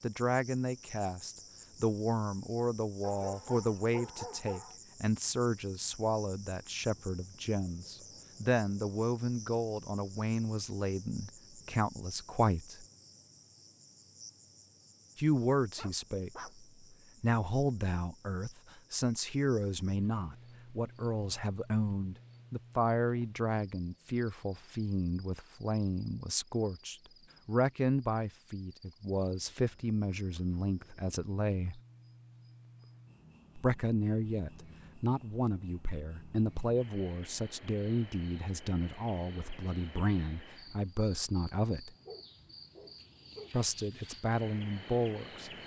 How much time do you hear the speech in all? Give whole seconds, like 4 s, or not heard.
40 s.